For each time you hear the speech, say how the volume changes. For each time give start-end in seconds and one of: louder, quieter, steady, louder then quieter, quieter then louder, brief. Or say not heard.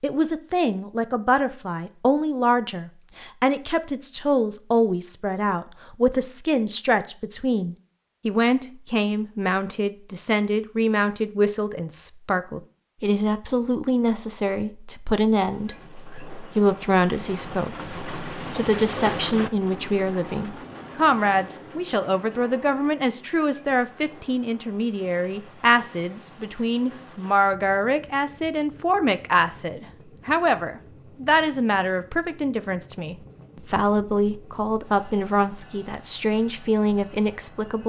0.0-37.8 steady.